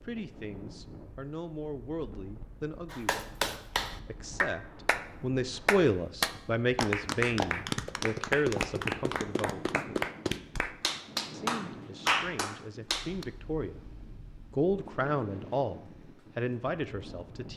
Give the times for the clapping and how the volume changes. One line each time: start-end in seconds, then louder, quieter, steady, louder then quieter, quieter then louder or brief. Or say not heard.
2.9-5.0 brief
5.7-13.2 steady.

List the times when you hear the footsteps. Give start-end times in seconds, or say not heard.
not heard.